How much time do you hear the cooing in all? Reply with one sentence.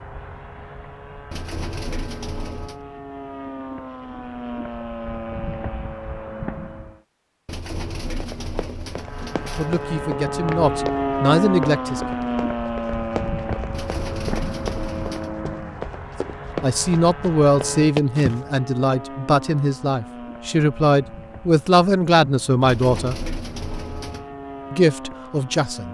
You can hear the cooing for 7 seconds altogether.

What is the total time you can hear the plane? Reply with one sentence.
The plane can be heard for 24 seconds in total.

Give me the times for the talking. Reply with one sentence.
The talking can be heard from 9.6 to 12.0 s, from 16.6 to 23.1 s and from 24.7 to 25.8 s.